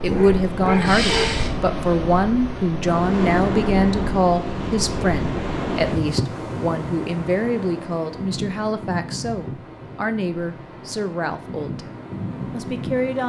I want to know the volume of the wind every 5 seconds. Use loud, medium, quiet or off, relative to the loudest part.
loud, loud, medium.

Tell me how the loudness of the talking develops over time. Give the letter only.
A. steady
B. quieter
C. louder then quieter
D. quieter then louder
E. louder
B.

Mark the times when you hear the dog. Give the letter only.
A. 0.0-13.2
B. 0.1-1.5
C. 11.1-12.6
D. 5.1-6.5
B.